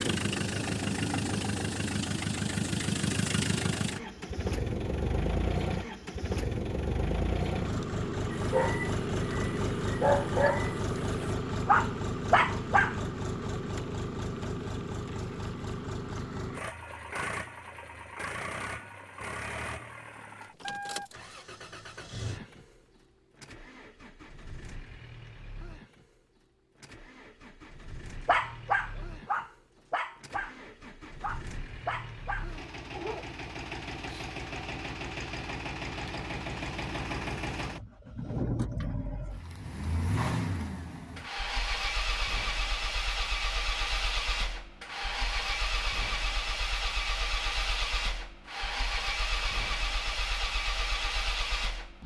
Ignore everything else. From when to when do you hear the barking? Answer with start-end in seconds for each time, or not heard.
8.3-13.1, 28.2-33.2.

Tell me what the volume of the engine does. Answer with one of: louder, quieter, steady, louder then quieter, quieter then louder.
quieter then louder.